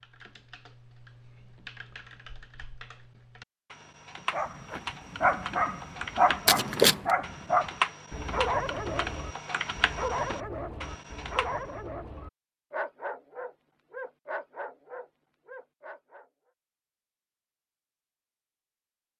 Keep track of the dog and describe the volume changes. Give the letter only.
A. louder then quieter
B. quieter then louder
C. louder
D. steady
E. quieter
E.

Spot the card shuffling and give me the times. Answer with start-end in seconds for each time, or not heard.
6.5-7.1.